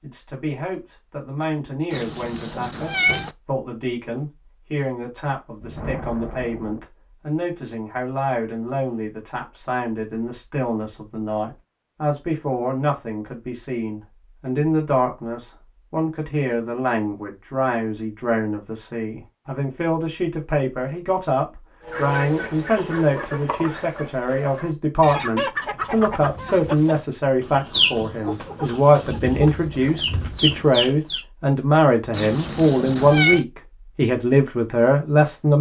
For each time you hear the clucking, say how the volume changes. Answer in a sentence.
You can hear the clucking from 21.9 to 31.2 s, getting louder.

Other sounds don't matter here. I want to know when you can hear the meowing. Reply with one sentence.
The meowing can be heard from 1.9 to 3.4 s and from 32.1 to 33.5 s.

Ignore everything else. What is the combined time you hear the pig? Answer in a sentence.
The pig can't be heard in this clip.